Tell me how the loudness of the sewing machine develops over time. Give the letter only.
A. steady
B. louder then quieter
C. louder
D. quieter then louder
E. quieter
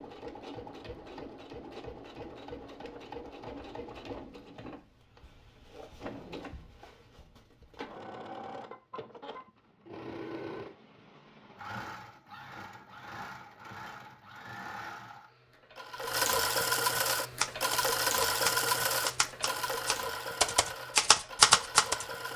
C.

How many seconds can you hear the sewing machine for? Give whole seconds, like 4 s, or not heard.
22 s.